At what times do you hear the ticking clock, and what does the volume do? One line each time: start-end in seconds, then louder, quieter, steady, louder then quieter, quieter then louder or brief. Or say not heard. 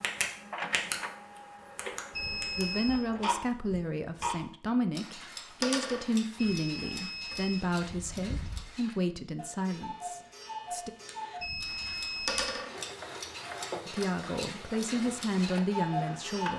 0.0-0.9 brief
1.8-16.5 quieter then louder.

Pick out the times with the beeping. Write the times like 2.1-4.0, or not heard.
2.1-3.0, 6.3-8.6, 11.3-12.6.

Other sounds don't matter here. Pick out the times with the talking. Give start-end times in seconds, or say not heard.
2.5-10.9, 13.8-16.5.